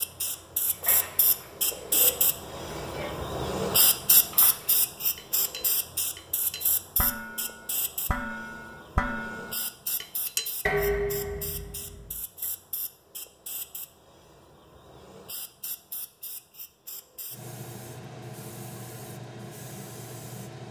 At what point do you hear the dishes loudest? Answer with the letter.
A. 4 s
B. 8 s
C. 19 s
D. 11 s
D.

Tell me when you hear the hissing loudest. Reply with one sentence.
The volume of the hissing peaks at 4 seconds.